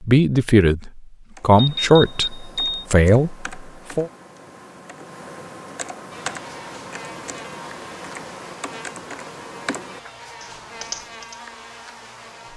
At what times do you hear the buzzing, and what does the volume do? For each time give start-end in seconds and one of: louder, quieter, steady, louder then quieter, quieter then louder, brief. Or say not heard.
6.1-12.5 steady.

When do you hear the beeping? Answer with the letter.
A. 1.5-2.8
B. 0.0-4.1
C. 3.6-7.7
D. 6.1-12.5
A.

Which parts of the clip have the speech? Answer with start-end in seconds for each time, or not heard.
0.0-4.1.